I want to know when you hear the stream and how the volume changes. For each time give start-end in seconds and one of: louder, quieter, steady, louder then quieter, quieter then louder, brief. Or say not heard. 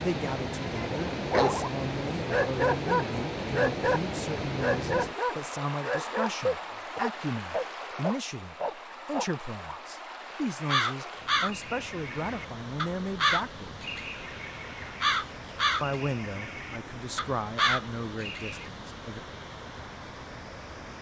0.0-20.9 quieter.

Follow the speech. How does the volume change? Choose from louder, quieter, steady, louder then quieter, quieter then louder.
steady.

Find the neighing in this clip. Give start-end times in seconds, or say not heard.
not heard.